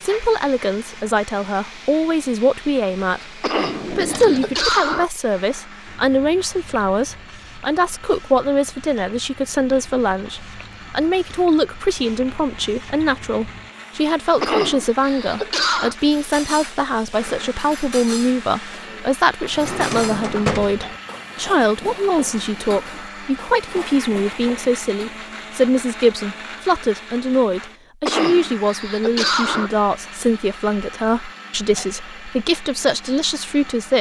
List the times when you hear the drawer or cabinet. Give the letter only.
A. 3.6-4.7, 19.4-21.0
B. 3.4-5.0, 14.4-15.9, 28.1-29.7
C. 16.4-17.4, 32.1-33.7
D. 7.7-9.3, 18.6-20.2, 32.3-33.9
A.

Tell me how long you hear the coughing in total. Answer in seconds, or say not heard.
5 s.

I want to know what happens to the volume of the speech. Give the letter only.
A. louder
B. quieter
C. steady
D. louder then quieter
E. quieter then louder
C.